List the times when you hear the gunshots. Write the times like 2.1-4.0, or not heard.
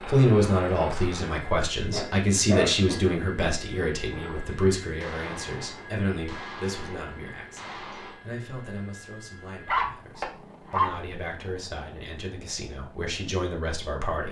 5.0-8.2.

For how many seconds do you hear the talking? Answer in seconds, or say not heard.
14 s.